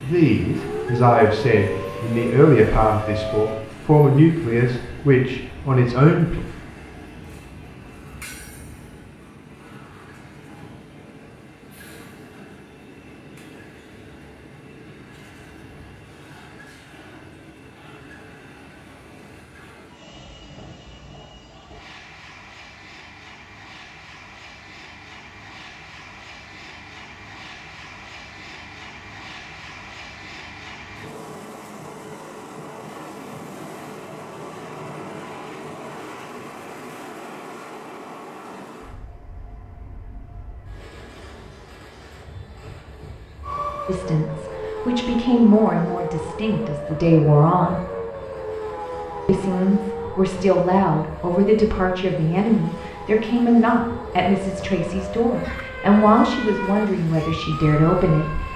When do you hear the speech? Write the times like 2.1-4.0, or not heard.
0.0-6.4, 43.9-47.8, 49.2-58.2.